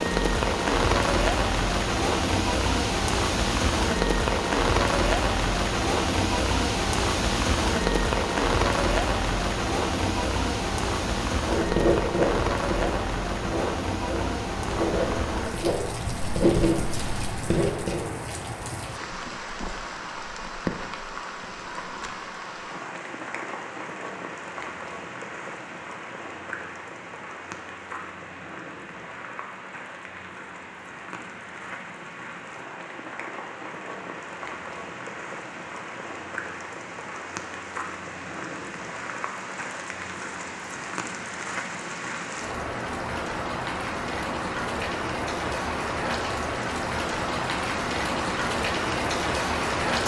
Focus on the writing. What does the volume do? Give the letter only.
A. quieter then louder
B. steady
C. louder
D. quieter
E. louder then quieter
A.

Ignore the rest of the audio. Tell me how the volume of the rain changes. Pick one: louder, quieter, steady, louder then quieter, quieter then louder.
quieter then louder.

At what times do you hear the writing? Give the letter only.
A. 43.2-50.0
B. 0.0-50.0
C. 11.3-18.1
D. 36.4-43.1
C.